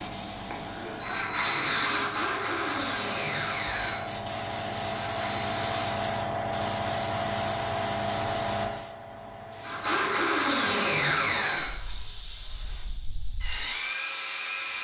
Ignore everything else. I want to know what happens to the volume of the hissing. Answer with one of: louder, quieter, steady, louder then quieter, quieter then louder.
louder then quieter.